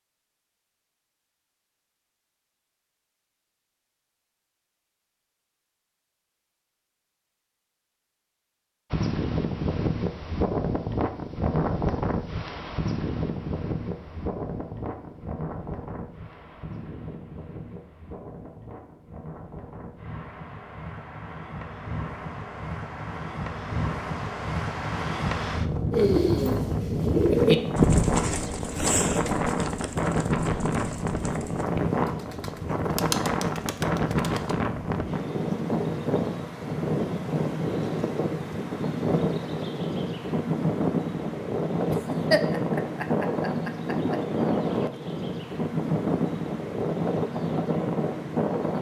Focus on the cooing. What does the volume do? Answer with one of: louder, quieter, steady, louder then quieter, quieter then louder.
quieter then louder.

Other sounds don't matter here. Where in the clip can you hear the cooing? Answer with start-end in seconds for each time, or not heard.
25.9-34.5.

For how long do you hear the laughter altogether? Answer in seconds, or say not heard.
2 s.